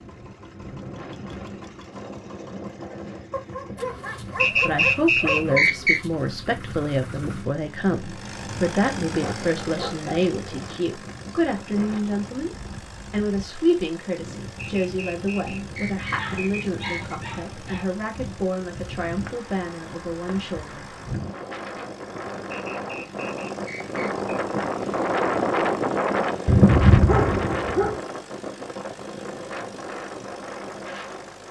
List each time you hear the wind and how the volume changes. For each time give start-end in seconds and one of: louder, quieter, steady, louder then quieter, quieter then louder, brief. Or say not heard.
0.0-31.4 louder.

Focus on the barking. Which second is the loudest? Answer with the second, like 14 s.
27 s.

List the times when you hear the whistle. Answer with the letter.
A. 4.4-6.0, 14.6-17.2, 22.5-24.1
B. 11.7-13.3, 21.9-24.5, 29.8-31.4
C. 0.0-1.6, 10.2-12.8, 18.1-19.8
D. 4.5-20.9
A.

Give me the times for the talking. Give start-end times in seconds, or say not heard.
4.5-20.9.